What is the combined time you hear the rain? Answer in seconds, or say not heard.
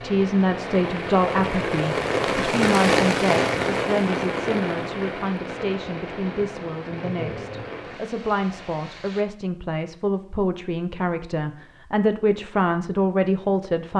9 s.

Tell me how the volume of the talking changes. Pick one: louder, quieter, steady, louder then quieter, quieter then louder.
quieter then louder.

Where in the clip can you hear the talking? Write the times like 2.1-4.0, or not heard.
0.0-13.9.